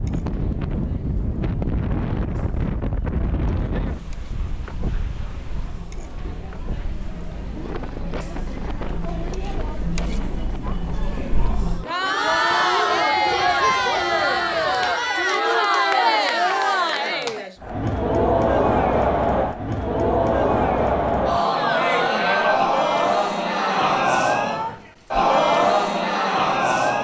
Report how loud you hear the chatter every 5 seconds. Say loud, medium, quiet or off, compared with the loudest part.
quiet, quiet, loud, loud, loud, loud.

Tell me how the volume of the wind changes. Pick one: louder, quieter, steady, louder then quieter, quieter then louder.
quieter.